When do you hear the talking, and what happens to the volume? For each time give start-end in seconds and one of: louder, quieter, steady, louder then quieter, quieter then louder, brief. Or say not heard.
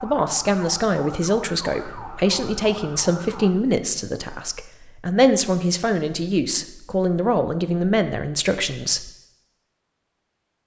0.0-9.1 steady.